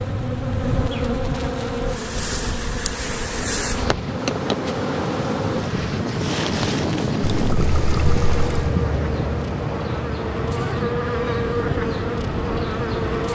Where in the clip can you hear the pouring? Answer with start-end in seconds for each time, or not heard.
7.2-8.6.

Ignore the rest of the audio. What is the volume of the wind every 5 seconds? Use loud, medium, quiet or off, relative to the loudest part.
medium, loud, medium.